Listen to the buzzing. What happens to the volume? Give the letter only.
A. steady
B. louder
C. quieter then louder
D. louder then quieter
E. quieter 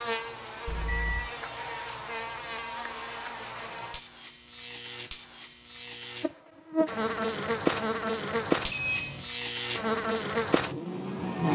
B.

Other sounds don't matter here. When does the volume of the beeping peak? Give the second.
9 s.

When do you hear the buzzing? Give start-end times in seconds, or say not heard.
0.0-11.5.